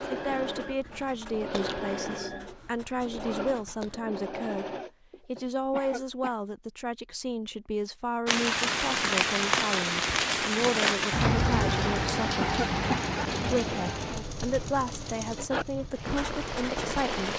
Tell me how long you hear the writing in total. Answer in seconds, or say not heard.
6 s.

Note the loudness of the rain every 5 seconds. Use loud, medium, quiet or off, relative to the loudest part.
off, loud, loud, medium.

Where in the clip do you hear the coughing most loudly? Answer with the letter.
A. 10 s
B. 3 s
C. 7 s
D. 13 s
D.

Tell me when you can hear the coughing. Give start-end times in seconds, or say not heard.
5.7-6.3, 12.4-13.6.